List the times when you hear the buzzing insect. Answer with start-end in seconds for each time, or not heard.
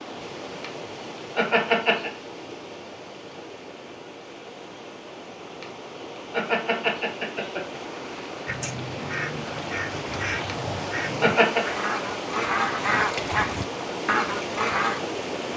not heard.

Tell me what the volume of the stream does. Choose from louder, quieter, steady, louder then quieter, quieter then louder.
louder.